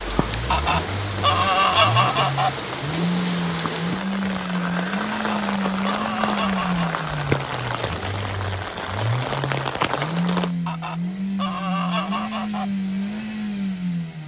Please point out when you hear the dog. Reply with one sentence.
The dog can't be heard in this clip.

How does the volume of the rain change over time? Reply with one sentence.
The volume of the rain stays about the same.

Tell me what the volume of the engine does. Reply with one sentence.
The volume of the engine stays about the same.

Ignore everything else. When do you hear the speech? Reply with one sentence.
The speech can't be heard in this clip.